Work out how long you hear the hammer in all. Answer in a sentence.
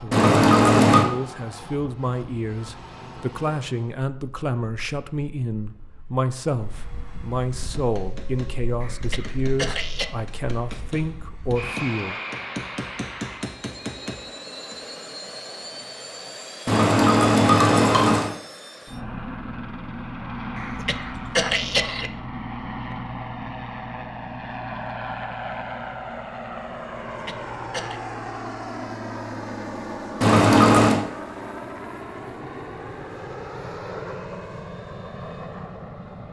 The hammer can be heard for 7 seconds in total.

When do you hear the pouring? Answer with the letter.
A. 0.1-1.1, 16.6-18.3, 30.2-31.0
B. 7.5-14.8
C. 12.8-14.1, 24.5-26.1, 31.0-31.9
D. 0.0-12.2
A.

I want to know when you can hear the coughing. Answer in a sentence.
The coughing can be heard from 8.8 to 10.1 s, from 20.6 to 22.1 s and from 27.1 to 28.0 s.